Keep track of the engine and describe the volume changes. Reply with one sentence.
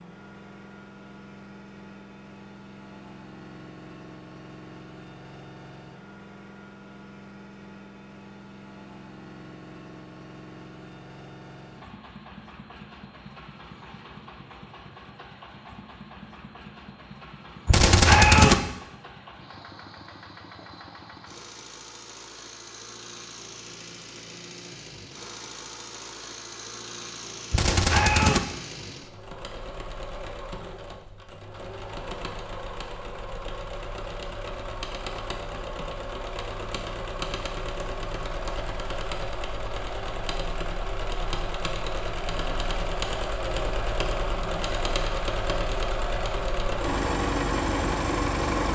The loudness of the engine goes up.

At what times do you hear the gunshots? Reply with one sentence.
You can hear the gunshots from 17.6 to 18.6 s and from 27.5 to 28.4 s.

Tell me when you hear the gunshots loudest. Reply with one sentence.
The volume of the gunshots peaks at 18 seconds.